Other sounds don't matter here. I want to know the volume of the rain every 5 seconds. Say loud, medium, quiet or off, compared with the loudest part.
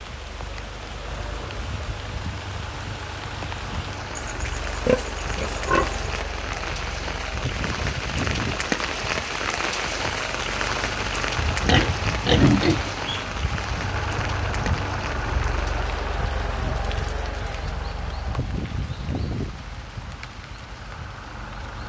medium, loud, loud, medium, quiet.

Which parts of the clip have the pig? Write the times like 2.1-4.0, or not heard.
4.2-6.2, 11.7-13.4.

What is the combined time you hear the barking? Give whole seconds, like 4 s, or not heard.
not heard.